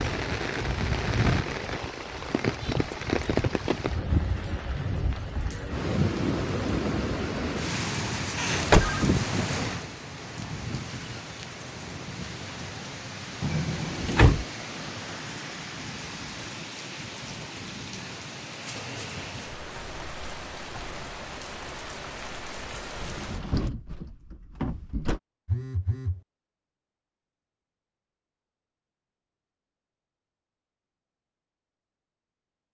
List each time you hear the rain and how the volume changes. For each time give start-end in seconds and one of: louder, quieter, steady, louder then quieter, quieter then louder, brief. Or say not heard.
0.0-23.7 quieter.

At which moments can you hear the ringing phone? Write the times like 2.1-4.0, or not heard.
8.5-9.1, 25.4-26.2.